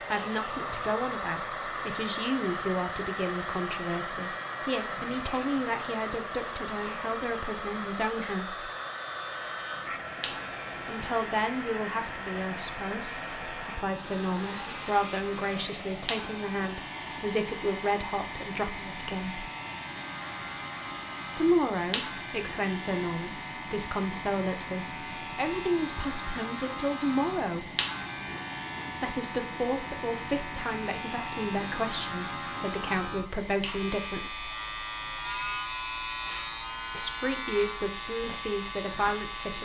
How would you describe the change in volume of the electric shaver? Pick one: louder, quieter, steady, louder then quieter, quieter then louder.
louder.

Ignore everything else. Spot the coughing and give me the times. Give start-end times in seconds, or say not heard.
not heard.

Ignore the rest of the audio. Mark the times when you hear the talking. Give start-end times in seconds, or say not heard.
0.1-8.7, 10.8-19.5, 21.4-27.7, 29.0-34.5, 37.0-39.5.